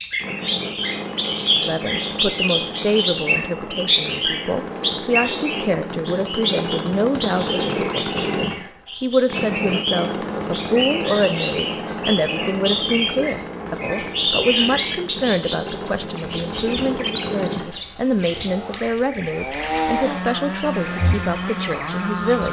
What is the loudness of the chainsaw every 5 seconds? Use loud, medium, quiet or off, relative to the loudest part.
medium, loud, loud, loud, loud.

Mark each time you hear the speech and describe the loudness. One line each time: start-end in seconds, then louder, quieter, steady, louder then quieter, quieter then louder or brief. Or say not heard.
1.5-22.4 steady.